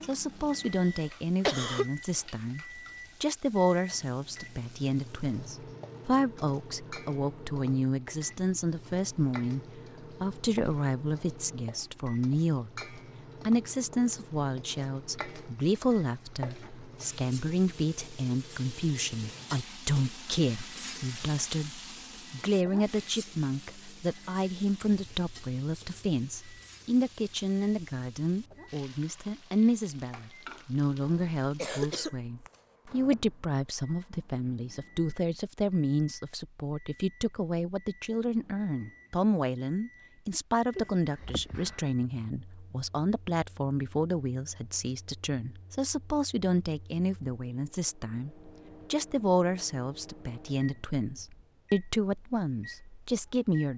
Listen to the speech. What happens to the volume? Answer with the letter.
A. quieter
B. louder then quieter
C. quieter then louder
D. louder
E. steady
E.